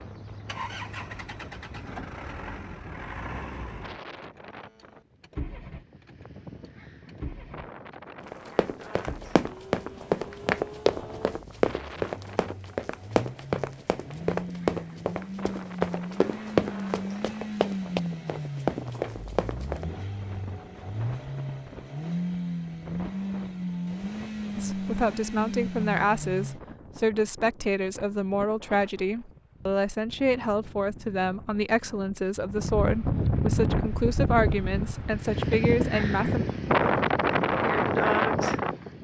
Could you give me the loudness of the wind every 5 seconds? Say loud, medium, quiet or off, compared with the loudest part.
quiet, quiet, quiet, quiet, quiet, quiet, medium, loud.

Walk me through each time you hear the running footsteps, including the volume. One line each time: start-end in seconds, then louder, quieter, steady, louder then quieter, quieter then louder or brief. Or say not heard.
8.2-19.9 steady.